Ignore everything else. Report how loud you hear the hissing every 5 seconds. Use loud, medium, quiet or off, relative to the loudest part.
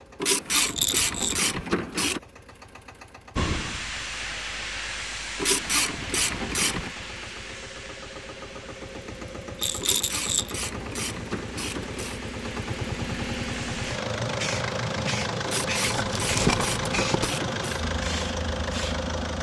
loud, medium, medium, loud.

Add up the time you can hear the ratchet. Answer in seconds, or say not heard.
8 s.